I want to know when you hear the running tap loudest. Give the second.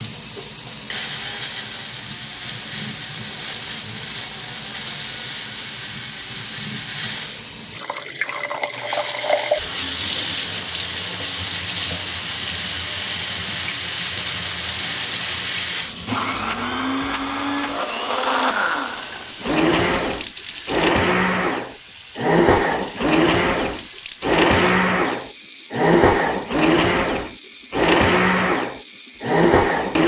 10 s.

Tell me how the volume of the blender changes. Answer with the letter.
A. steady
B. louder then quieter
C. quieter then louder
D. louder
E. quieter
D.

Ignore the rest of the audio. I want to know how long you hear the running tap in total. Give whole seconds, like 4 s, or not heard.
30 s.